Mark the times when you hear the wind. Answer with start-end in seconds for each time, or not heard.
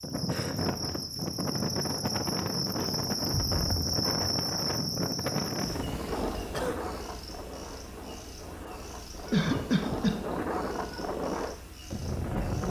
0.0-12.6.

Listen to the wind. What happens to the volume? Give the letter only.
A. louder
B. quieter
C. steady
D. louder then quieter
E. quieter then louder
E.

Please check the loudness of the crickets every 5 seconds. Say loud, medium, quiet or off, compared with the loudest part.
loud, medium, quiet.